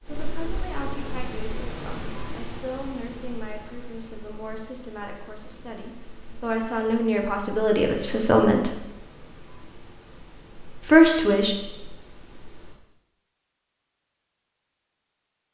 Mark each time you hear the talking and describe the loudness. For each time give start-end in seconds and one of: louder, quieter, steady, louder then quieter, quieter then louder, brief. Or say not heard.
0.0-8.7 louder
10.8-11.6 brief.